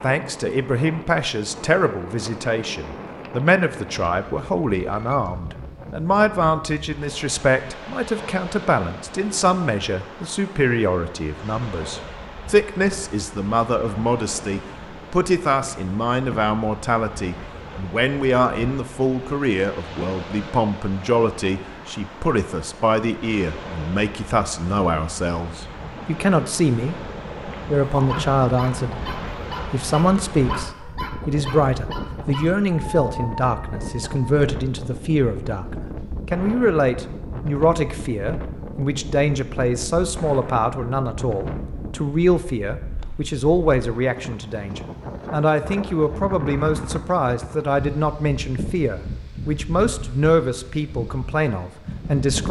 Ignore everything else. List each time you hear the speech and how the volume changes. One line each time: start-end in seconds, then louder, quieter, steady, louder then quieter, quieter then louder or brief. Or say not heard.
0.0-26.9 steady
27.6-29.0 brief
29.7-52.4 steady.